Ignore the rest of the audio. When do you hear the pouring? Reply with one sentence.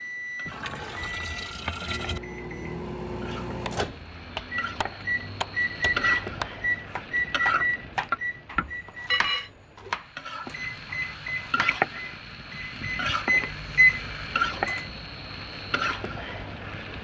The pouring can be heard from 0.5 to 2.2 s.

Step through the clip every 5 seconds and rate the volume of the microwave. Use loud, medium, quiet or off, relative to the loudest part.
medium, loud, loud, off.